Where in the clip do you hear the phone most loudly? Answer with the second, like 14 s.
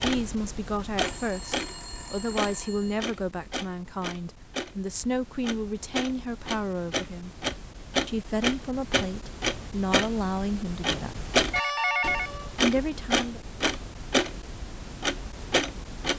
12 s.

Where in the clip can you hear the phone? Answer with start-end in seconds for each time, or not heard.
1.0-3.0, 11.5-12.5.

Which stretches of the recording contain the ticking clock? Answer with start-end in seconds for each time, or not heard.
0.0-16.1.